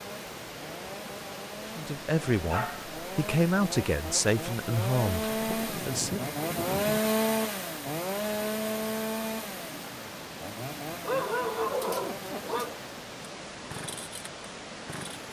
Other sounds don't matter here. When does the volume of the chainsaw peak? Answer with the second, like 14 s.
7 s.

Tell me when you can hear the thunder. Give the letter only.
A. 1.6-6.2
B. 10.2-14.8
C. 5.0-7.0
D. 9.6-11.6
C.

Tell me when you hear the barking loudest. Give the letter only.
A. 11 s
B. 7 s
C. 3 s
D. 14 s
A.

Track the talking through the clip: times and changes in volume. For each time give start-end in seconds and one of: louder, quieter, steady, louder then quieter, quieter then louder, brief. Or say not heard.
1.6-6.2 quieter.